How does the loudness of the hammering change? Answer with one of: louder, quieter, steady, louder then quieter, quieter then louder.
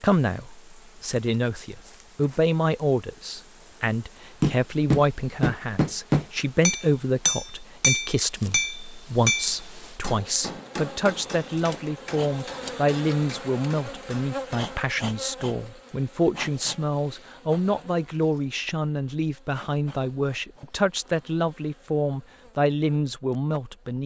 quieter.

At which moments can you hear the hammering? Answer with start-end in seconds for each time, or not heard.
4.4-14.8.